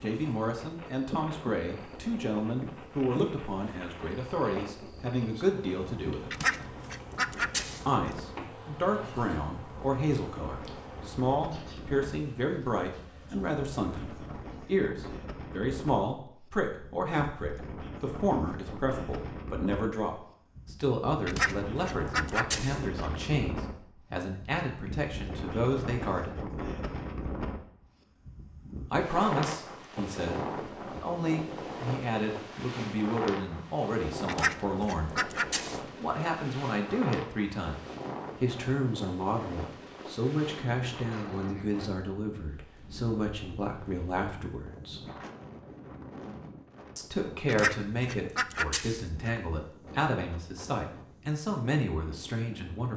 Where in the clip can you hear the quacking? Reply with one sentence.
The quacking can be heard from 6.3 to 8.1 s, from 21.2 to 23.1 s, from 34.2 to 35.8 s and from 47.5 to 49.4 s.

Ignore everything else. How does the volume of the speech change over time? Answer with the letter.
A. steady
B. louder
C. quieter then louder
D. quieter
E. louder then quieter
A.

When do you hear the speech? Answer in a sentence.
You can hear the speech from 0.0 to 6.4 s, from 7.8 to 26.4 s, from 28.9 to 45.0 s and from 47.0 to 52.9 s.